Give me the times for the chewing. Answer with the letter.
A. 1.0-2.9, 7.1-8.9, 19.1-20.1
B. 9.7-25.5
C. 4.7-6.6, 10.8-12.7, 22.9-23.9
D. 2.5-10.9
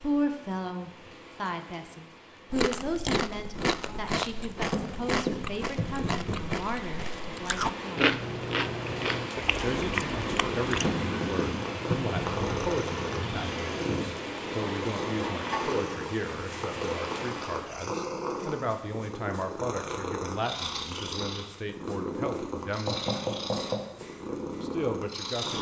D.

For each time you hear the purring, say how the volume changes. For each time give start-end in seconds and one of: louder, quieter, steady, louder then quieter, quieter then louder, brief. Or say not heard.
9.7-25.5 steady.